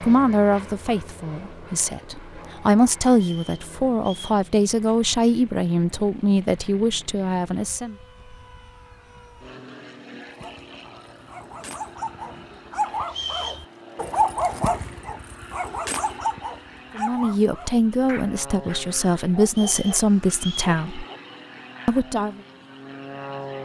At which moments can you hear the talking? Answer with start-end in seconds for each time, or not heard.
0.0-8.0, 16.9-21.1, 21.9-22.4.